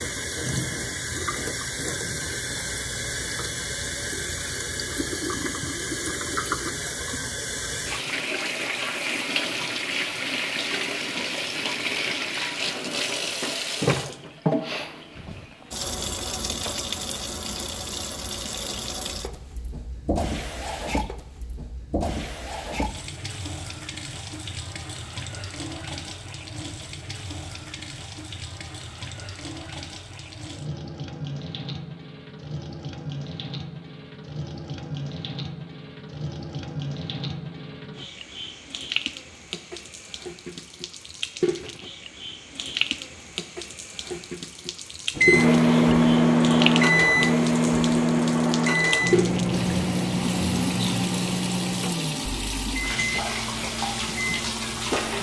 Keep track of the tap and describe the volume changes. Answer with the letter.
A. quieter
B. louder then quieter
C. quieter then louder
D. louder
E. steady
C.